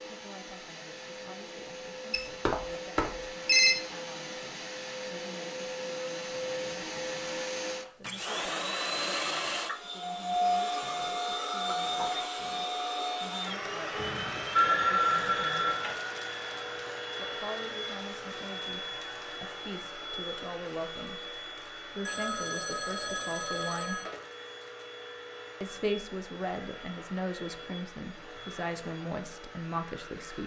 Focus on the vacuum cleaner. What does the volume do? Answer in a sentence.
The volume of the vacuum cleaner goes up, then down.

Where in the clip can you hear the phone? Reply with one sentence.
You can hear the phone from 2.1 to 3.8 s, from 13.9 to 16.0 s and from 22.1 to 24.1 s.